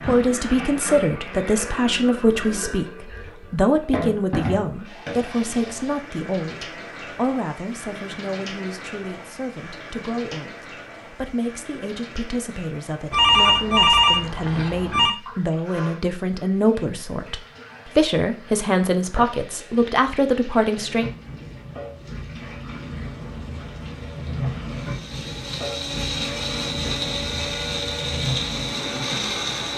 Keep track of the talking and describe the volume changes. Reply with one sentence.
The loudness of the talking goes down, then up.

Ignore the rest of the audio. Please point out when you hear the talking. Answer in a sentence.
You can hear the talking from 0.1 to 21.1 s.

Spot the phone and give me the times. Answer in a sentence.
The phone can be heard from 13.1 to 15.2 s.